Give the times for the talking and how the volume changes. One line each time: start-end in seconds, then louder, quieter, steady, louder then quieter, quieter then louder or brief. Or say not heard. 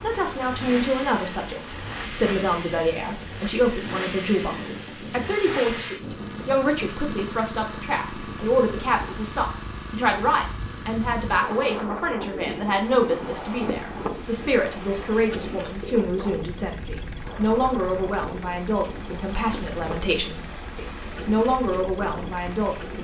0.0-22.9 steady.